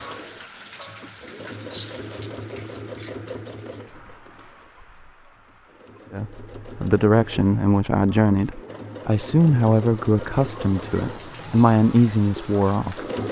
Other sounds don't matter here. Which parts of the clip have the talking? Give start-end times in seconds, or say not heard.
6.1-13.0.